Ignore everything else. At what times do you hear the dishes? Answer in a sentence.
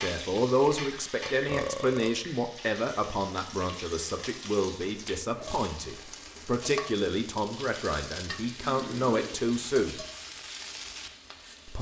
You can hear the dishes from 0.0 to 1.5 s.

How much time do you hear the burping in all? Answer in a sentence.
You can hear the burping for 2 seconds altogether.